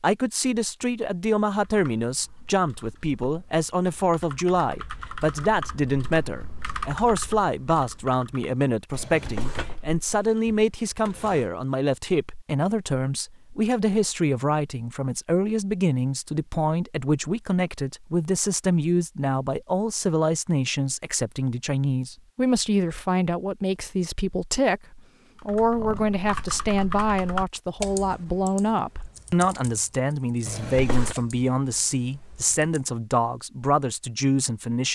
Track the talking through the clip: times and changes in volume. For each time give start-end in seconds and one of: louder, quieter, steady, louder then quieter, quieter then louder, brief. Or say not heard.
0.0-34.9 steady.